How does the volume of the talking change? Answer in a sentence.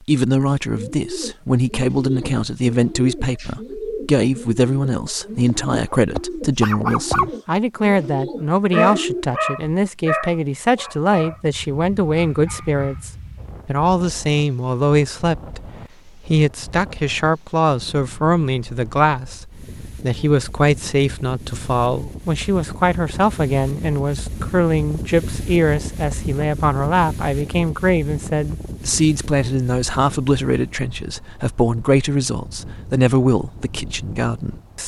The loudness of the talking stays about the same.